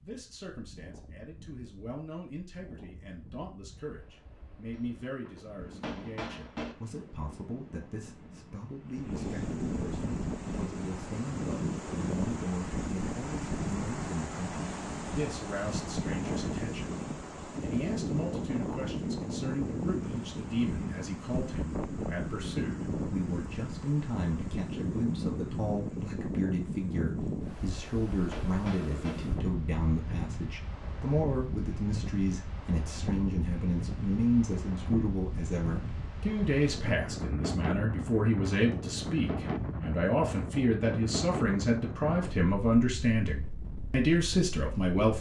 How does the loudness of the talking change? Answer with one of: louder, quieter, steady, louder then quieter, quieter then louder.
louder.